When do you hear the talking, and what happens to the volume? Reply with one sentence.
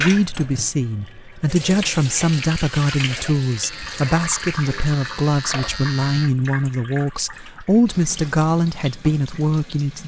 You can hear the talking from 0.0 to 10.0 s, at a steady volume.